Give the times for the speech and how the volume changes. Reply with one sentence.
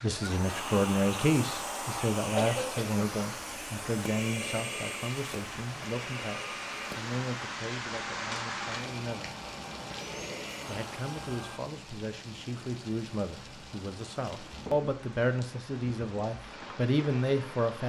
The speech can be heard from 0.0 to 9.3 s, getting quieter; and from 10.7 to 17.8 s, getting louder.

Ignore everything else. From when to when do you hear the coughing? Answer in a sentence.
The coughing can be heard from 2.4 to 3.0 s.